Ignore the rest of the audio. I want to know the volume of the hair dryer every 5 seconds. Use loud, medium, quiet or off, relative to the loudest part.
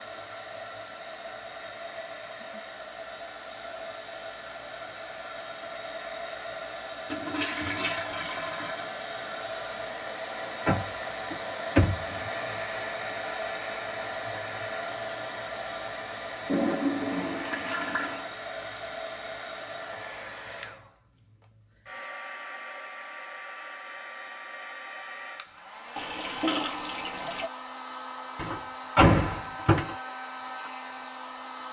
medium, loud, loud, loud, medium, medium, medium.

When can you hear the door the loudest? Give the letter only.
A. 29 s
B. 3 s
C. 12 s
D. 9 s
A.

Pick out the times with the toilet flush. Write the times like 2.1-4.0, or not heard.
7.1-8.9, 16.4-18.3, 25.9-27.5.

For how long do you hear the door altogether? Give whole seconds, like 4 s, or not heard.
4 s.